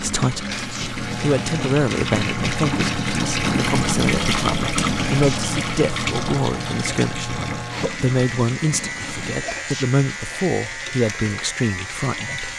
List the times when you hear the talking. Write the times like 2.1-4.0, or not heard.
0.0-12.5.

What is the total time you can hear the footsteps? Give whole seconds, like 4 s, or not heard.
not heard.